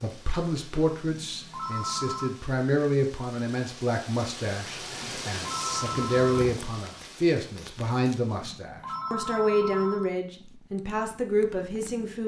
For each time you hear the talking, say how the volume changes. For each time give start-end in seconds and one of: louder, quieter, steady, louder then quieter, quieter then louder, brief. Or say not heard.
0.0-12.2 steady.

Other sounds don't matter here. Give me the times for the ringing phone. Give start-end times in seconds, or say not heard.
1.1-2.4, 5.0-6.5, 8.4-10.1.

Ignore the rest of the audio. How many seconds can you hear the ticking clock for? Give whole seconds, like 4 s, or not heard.
not heard.